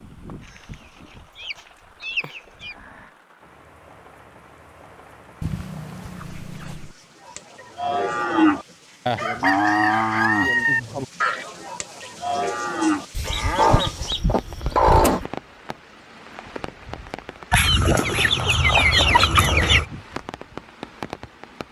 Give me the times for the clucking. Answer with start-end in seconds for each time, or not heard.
0.5-2.8, 5.4-6.9, 9.2-10.8, 13.2-15.2, 17.5-19.9.